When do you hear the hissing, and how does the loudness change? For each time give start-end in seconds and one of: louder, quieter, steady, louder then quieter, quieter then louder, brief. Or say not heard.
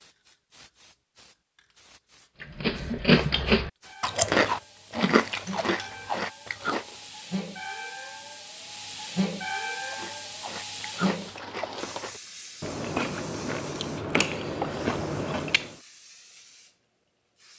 0.0-17.5 louder then quieter.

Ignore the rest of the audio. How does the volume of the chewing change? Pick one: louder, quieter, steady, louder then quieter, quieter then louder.
quieter then louder.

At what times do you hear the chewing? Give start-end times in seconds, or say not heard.
2.4-7.0, 9.8-15.8.